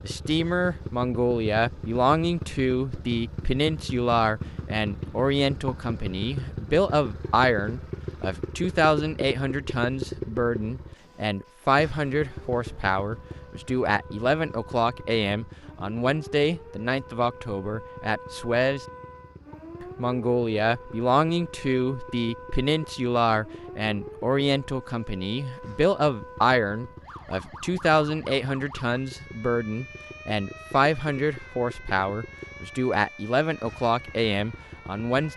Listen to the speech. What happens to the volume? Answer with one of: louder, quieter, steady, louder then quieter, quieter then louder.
steady.